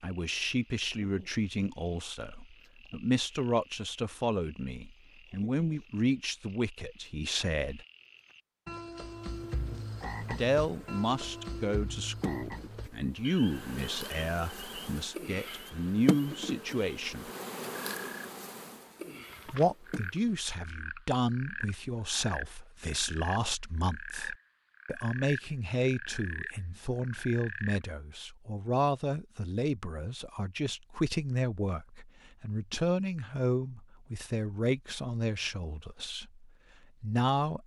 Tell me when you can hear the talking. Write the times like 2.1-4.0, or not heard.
0.0-7.8, 10.2-17.3, 19.4-37.6.